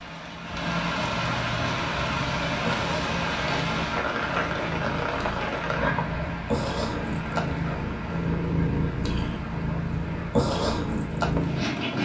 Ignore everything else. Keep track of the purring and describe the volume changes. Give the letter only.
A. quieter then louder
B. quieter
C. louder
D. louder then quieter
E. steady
C.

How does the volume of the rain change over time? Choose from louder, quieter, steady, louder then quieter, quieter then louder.
quieter.